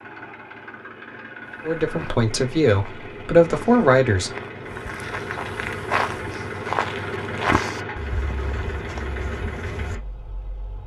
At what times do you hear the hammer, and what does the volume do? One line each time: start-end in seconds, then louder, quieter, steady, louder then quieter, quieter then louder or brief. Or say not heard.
not heard.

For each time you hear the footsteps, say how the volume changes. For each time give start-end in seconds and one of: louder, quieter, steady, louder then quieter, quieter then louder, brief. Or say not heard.
1.4-9.9 louder then quieter.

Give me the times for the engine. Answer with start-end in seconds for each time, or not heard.
0.0-10.8.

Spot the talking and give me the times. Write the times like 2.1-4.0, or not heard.
1.6-4.3.